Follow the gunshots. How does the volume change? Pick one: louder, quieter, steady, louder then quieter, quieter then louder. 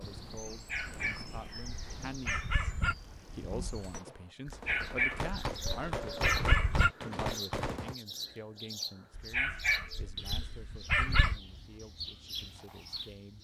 louder.